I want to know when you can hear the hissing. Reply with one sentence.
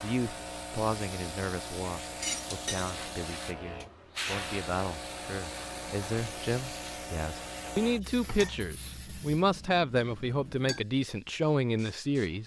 The hissing can be heard from 0.0 to 12.4 s.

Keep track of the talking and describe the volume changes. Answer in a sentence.
The loudness of the talking goes up.